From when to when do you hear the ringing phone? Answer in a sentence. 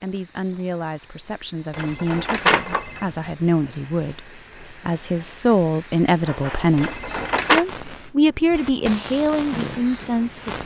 You can hear the ringing phone from 1.7 to 3.0 s and from 6.8 to 7.7 s.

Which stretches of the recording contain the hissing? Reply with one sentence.
The hissing can be heard from 0.0 to 10.6 s.